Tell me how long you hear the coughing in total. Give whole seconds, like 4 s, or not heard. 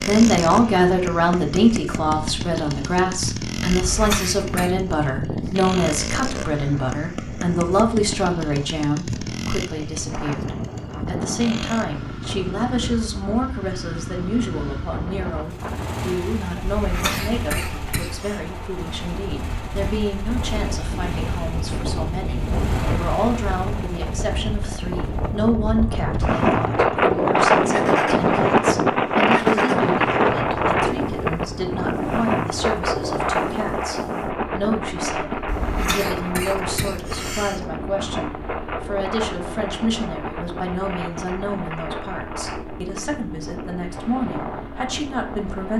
5 s.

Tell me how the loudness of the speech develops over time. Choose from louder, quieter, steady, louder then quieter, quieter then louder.
quieter.